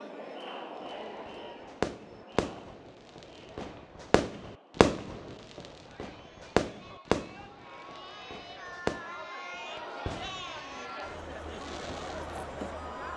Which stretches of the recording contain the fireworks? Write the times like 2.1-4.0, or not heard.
0.8-12.8.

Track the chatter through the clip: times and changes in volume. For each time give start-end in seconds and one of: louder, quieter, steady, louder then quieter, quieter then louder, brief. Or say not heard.
0.0-13.1 quieter then louder.